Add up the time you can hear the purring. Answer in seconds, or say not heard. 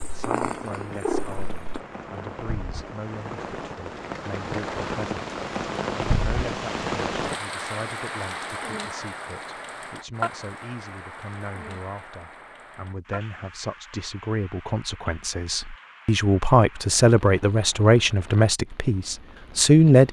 2 s.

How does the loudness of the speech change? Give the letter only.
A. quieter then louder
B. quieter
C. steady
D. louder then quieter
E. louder
E.